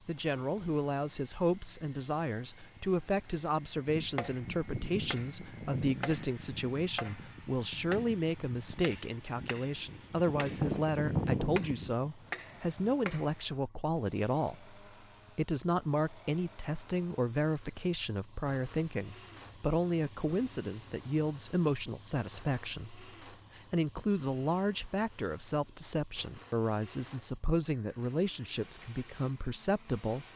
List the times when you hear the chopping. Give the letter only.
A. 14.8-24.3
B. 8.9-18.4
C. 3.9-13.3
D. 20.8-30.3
C.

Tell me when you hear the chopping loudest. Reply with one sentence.
The volume of the chopping peaks at 11 seconds.